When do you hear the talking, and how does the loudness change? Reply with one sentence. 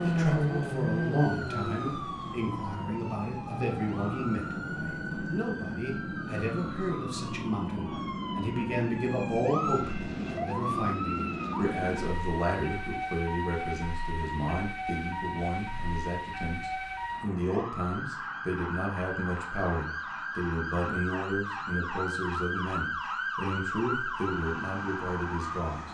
You can hear the talking from 0.0 to 25.9 s, at a steady volume.